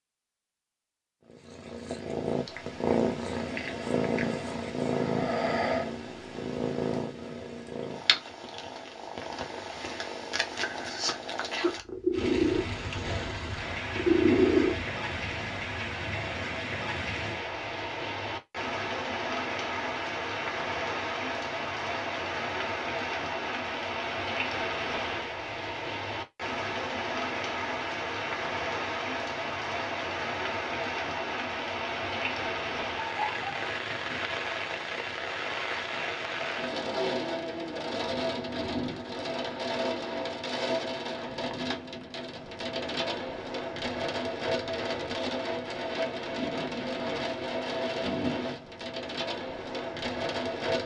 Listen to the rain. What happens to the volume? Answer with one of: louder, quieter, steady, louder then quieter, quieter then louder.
steady.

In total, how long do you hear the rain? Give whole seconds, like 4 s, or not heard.
39 s.